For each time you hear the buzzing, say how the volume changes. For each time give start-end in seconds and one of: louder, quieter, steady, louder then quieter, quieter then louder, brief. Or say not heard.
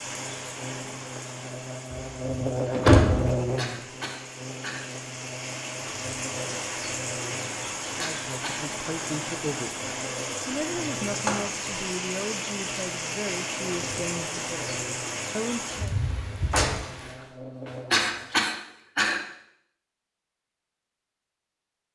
0.0-18.3 quieter.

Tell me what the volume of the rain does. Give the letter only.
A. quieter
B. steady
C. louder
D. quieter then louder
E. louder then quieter
C.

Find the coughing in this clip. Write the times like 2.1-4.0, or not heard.
3.5-4.8, 8.0-8.7, 17.9-19.2.